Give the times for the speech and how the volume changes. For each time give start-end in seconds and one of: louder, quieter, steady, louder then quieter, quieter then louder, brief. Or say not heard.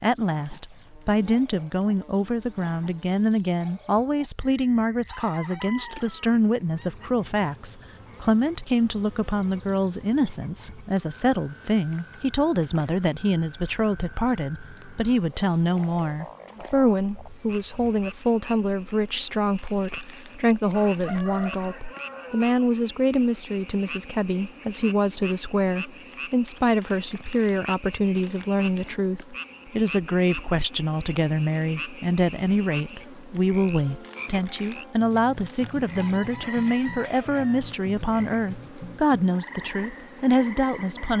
0.0-41.1 steady.